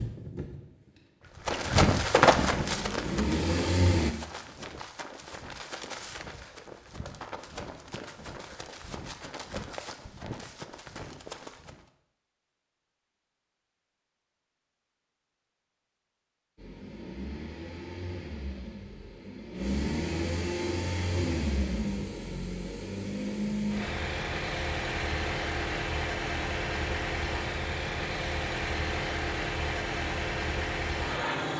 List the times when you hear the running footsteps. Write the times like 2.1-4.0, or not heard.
1.4-11.9.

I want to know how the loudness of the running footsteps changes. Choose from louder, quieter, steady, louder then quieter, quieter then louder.
quieter.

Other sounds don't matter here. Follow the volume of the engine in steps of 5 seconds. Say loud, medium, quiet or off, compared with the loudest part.
loud, off, off, medium, loud, loud, loud.